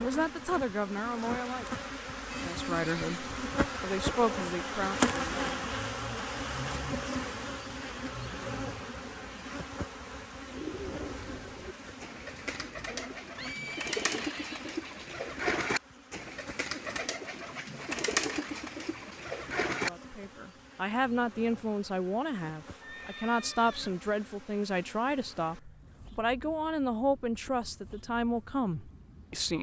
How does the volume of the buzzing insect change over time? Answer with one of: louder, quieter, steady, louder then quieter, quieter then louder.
quieter.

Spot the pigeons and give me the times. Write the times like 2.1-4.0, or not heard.
10.4-20.2.